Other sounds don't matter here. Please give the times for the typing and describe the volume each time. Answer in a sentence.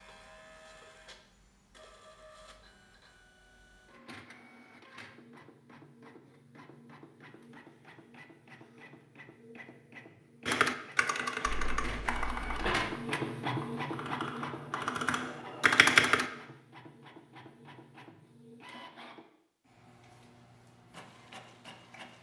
You can hear the typing from 10.4 to 16.3 s, getting quieter then louder.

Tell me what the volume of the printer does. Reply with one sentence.
The volume of the printer goes up, then down.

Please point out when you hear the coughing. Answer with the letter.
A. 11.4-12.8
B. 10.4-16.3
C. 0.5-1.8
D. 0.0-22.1
A.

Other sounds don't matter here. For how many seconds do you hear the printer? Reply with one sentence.
You can hear the printer for 22 seconds altogether.